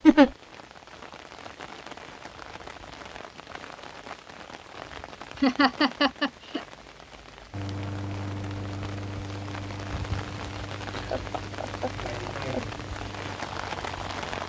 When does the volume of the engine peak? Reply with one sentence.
The volume of the engine peaks at 8 seconds.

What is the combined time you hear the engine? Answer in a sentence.
You can hear the engine for 7 seconds altogether.